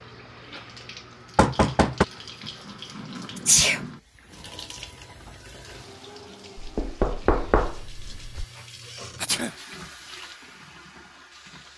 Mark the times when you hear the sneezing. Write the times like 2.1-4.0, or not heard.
3.4-3.9, 9.2-9.6.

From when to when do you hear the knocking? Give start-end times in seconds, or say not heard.
1.4-2.0, 6.5-8.4.